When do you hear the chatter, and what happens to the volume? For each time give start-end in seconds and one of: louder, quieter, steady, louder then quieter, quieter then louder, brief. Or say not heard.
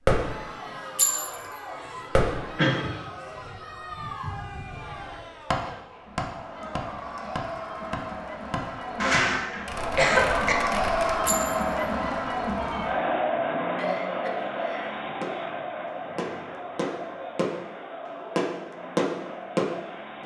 0.1-20.2 louder then quieter.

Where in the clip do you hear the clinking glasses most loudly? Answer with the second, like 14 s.
1 s.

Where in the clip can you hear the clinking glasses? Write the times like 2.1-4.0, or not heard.
0.9-1.6, 11.2-11.7.